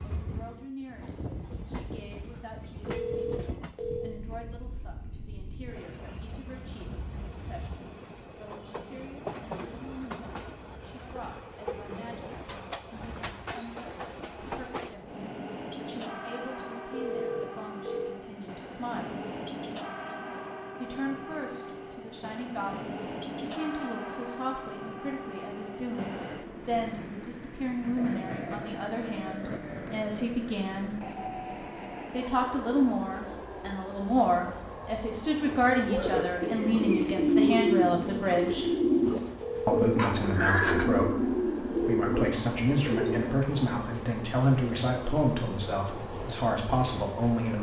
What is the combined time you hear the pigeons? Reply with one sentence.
You can hear the pigeons for 8 seconds altogether.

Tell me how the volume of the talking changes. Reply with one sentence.
The volume of the talking goes up.